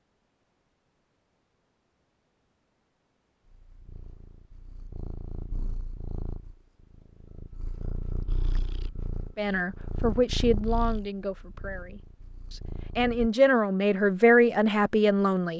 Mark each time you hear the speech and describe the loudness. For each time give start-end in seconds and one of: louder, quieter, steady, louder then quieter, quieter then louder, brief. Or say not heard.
9.3-15.5 quieter then louder.